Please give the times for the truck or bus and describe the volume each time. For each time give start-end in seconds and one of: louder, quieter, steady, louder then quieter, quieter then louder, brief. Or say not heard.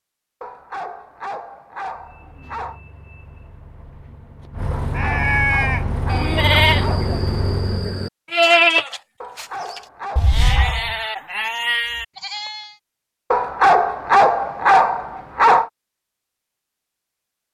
1.8-8.1 louder.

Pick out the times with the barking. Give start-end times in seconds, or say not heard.
0.4-2.8, 4.7-7.1, 9.2-10.9, 13.3-15.7.